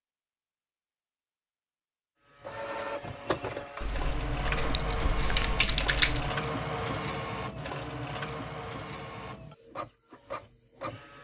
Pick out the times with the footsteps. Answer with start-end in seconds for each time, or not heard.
not heard.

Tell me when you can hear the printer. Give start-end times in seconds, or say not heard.
2.2-11.1.